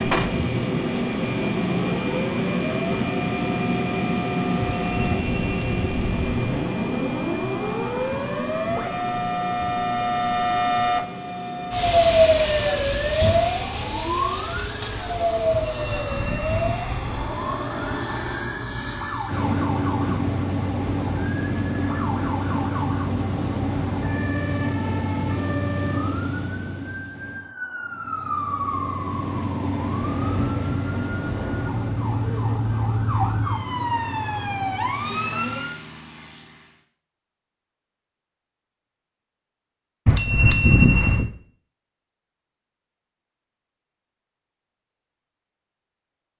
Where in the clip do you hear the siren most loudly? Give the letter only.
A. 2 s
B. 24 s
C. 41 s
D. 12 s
D.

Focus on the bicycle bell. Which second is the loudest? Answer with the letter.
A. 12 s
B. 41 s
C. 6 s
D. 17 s
B.